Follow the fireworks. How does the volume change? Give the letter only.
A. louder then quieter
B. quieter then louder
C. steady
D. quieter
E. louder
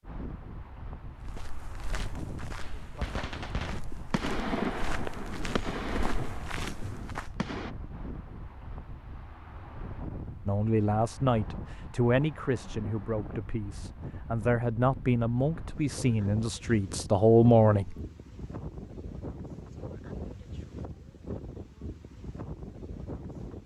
A.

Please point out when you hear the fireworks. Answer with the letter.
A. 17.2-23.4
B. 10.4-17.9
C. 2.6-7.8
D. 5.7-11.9
C.